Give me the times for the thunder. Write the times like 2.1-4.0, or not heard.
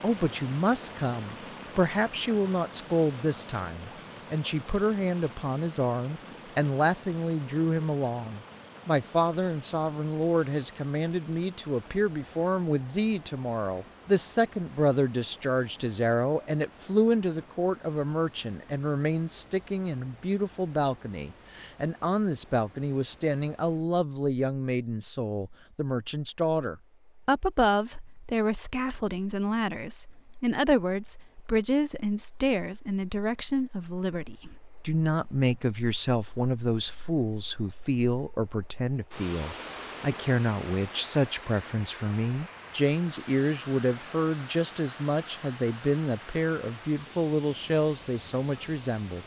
not heard.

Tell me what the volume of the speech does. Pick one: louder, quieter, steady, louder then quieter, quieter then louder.
steady.